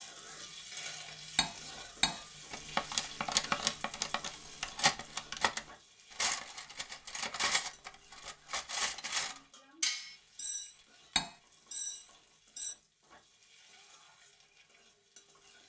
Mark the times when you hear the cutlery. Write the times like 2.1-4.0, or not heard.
1.4-12.8.